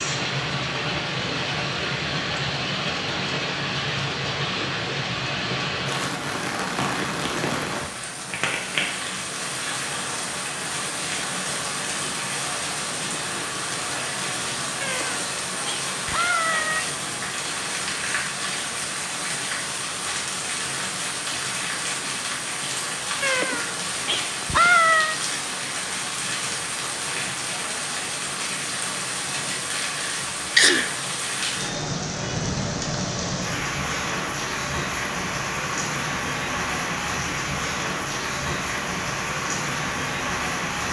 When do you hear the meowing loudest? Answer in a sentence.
The volume of the meowing peaks at 25 seconds.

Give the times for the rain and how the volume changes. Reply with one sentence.
The rain can be heard from 0.0 to 40.8 s, at a steady volume.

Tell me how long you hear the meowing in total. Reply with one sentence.
You can hear the meowing for 4 seconds altogether.